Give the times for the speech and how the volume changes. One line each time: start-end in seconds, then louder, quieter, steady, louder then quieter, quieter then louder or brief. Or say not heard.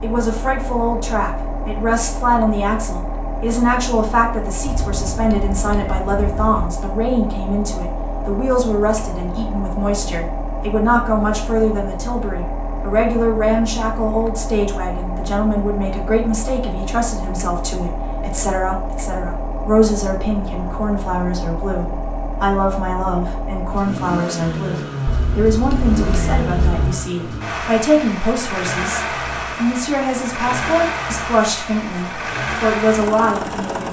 0.0-33.8 steady.